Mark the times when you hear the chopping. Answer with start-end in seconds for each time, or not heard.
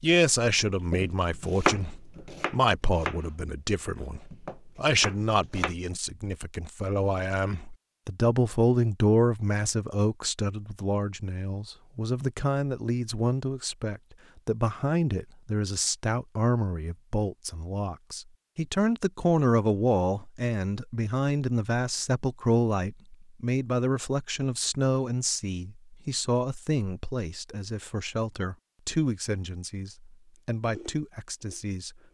0.5-5.8.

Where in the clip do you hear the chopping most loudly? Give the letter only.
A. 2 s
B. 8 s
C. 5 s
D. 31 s
A.